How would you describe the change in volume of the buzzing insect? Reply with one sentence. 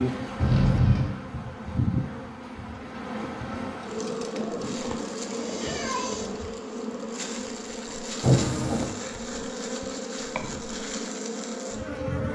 The volume of the buzzing insect stays about the same.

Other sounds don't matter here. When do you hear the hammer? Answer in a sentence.
You can't hear the hammer here.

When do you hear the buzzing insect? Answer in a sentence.
The buzzing insect can be heard from 0.0 to 12.3 s.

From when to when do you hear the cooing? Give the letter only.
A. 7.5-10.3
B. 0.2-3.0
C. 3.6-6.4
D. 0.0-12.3
C.